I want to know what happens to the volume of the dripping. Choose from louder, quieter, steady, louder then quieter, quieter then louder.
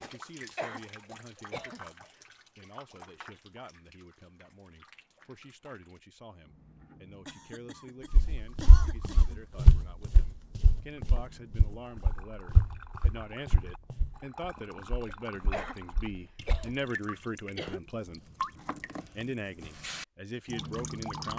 quieter then louder.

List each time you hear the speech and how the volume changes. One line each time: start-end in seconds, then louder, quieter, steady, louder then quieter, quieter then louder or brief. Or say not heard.
0.0-18.2 louder
19.1-21.3 brief.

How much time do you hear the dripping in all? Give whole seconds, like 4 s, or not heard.
21 s.